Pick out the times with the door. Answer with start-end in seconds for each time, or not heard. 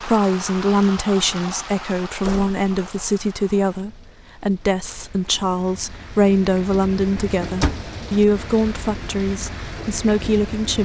2.2-3.2, 7.6-8.3.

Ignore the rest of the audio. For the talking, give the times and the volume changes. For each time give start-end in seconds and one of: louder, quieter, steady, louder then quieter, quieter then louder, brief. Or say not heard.
0.0-10.8 steady.